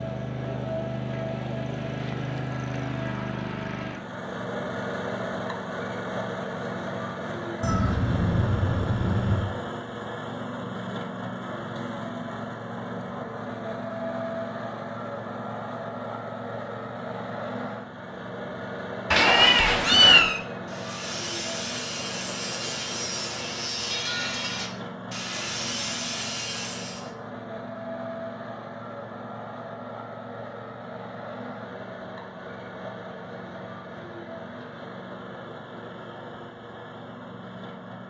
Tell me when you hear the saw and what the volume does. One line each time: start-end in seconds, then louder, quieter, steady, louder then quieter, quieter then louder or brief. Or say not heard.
20.6-27.1 steady.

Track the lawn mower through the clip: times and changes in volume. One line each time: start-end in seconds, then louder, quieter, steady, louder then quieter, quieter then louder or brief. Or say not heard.
0.0-38.0 quieter.